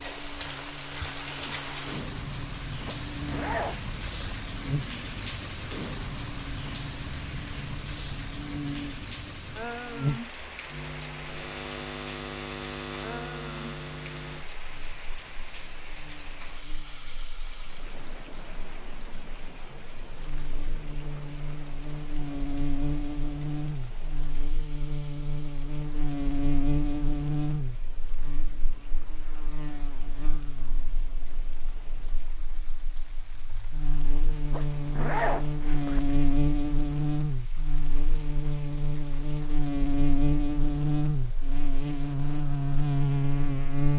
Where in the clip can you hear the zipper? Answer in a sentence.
You can hear the zipper from 2.9 to 4.3 s and from 34.5 to 36.0 s.